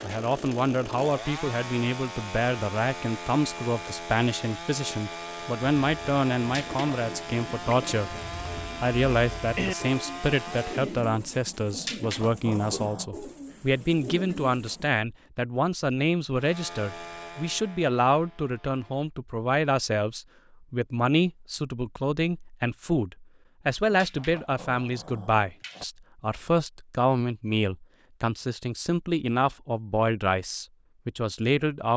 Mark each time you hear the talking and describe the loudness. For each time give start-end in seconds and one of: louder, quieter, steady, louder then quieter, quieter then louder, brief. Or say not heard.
0.0-8.2 steady
8.8-31.9 steady.